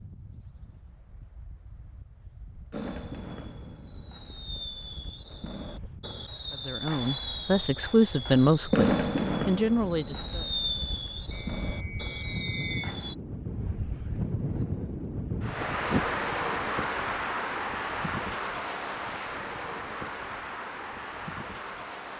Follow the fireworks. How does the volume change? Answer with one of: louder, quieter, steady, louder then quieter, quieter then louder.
louder then quieter.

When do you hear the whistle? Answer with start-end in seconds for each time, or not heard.
11.3-12.9.